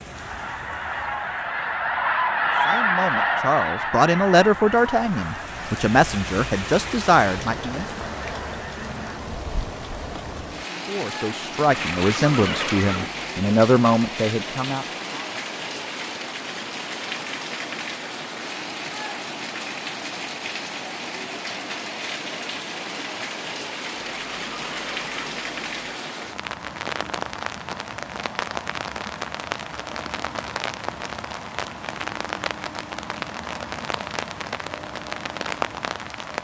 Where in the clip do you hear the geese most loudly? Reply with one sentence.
The loudest moment of the geese is at 3 seconds.